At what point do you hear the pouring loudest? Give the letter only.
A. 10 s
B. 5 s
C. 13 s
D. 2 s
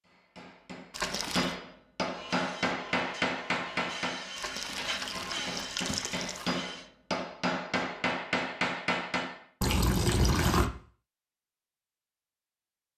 A.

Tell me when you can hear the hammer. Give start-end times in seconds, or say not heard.
0.1-9.4.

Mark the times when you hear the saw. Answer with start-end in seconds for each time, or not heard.
2.1-6.9.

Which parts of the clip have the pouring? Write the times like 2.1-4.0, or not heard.
0.9-1.6, 4.3-6.5, 9.6-10.7.